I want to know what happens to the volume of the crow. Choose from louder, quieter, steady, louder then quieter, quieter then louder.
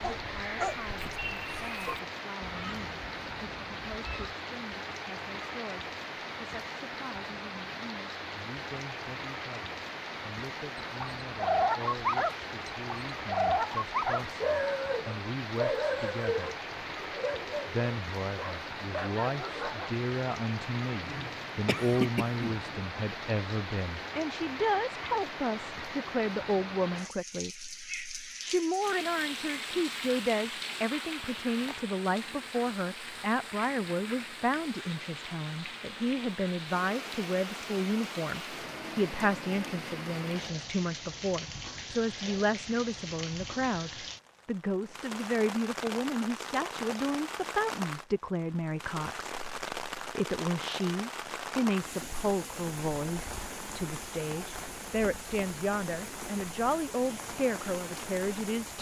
quieter.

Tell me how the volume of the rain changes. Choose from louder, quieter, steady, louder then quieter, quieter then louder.
steady.